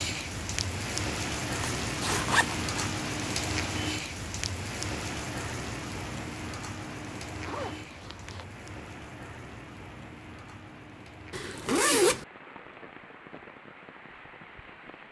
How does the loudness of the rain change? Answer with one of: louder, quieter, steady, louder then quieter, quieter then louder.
quieter.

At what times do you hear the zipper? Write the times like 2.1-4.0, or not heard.
1.8-3.0, 7.5-8.4, 11.3-12.2.